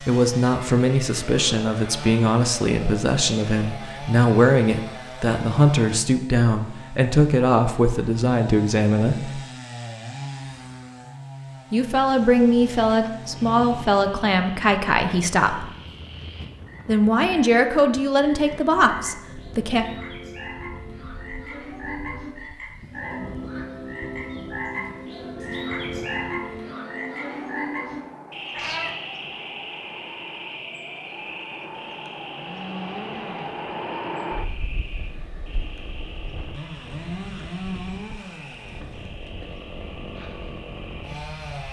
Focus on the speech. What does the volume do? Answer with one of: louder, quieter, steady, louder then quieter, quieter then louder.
steady.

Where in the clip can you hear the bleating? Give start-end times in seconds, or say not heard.
not heard.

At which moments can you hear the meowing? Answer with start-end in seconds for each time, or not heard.
28.5-28.9.